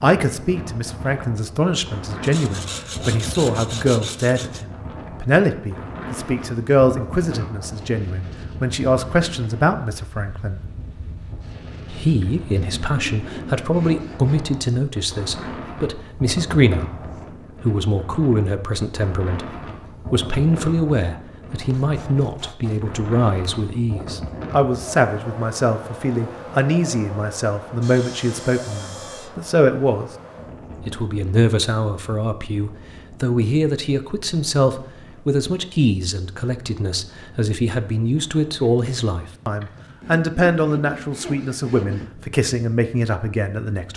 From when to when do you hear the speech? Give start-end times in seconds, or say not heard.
0.0-10.7, 11.9-16.9, 17.6-19.5, 20.1-30.1, 30.8-43.9.